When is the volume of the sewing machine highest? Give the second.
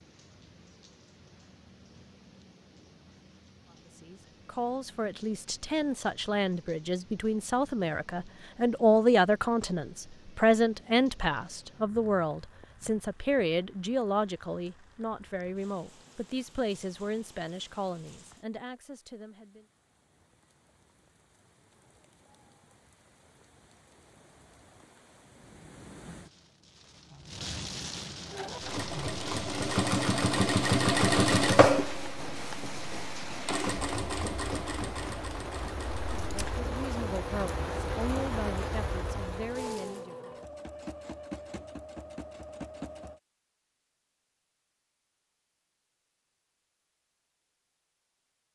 31 s.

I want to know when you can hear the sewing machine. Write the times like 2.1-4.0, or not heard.
28.2-43.2.